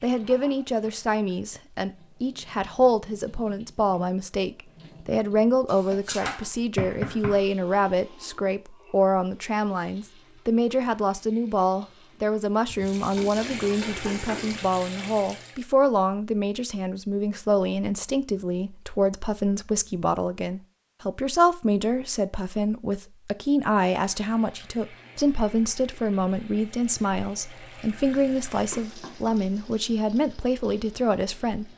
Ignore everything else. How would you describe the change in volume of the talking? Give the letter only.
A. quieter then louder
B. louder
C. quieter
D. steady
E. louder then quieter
D.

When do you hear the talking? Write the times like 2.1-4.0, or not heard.
0.0-31.7.